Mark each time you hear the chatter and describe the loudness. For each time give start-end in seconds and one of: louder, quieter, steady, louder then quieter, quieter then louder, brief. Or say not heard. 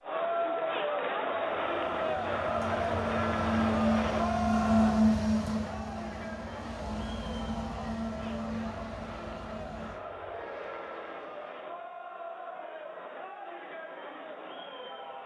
0.0-15.2 quieter.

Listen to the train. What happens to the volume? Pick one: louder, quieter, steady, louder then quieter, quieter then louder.
louder then quieter.